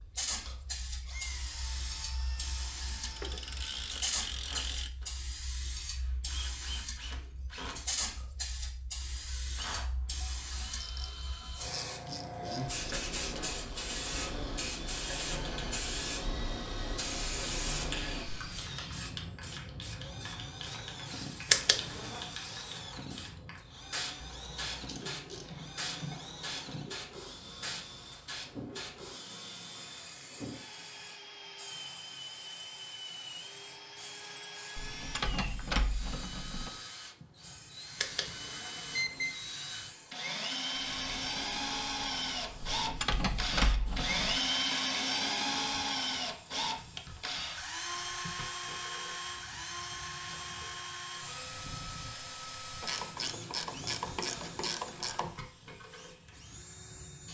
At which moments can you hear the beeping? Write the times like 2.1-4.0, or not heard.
21.5-22.2, 38.0-39.4.